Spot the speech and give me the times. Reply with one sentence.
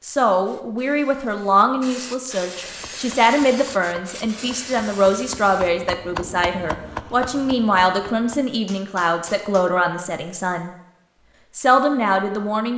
You can hear the speech from 0.0 to 10.7 s and from 11.6 to 12.7 s.